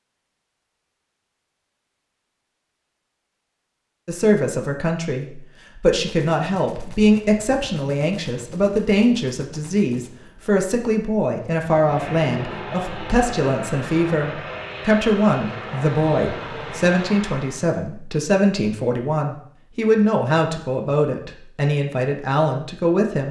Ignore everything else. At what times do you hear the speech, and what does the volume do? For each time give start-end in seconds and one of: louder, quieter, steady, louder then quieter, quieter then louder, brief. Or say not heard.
4.0-23.2 steady.